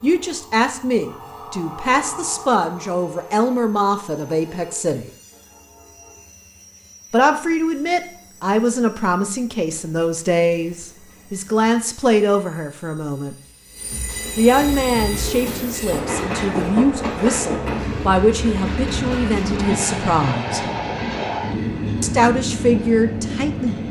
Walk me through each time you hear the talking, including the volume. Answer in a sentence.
You can hear the talking from 0.0 to 5.0 s, at a steady volume; from 7.1 to 13.3 s, at a steady volume; from 14.3 to 20.6 s, at a steady volume; and briefly from 22.0 to 23.8 s.